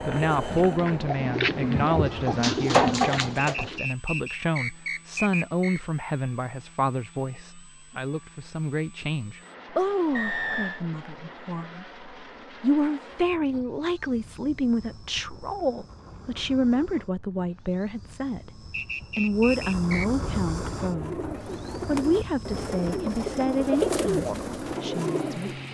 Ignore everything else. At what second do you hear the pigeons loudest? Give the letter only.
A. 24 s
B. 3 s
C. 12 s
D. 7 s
B.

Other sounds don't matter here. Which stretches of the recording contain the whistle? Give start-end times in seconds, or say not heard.
3.4-5.8, 10.1-10.8, 18.7-20.1.